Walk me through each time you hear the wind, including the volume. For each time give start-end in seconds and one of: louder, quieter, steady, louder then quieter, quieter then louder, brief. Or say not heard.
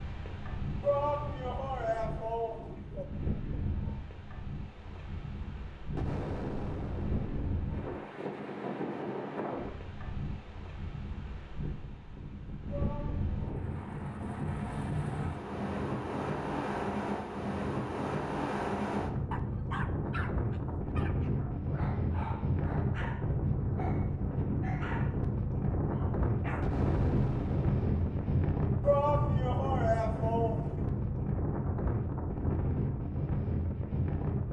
0.0-34.4 louder.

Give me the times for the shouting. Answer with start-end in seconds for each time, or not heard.
0.8-3.0, 12.7-13.3, 28.8-30.9.